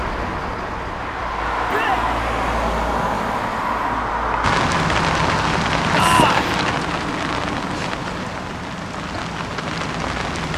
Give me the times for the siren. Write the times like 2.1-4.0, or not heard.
not heard.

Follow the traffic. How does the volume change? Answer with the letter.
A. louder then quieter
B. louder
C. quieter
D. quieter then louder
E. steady
C.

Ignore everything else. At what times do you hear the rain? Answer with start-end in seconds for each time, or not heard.
4.4-10.5.